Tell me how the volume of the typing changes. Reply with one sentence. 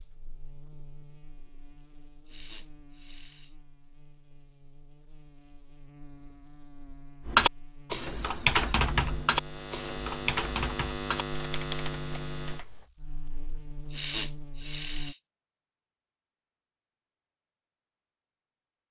The loudness of the typing goes down.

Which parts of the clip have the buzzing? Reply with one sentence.
The buzzing can be heard from 0.0 to 15.2 s.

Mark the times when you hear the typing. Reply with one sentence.
You can hear the typing from 7.2 to 12.8 s.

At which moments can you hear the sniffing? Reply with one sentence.
You can hear the sniffing from 2.2 to 3.5 s and from 13.9 to 15.2 s.